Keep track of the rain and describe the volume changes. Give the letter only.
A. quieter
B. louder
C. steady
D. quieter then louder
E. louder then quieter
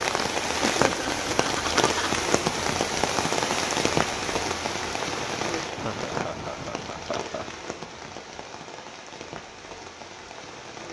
A.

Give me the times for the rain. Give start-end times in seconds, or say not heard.
0.0-10.8.